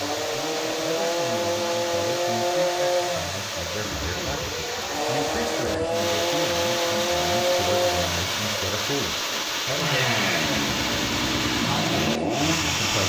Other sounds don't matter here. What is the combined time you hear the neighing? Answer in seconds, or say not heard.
2 s.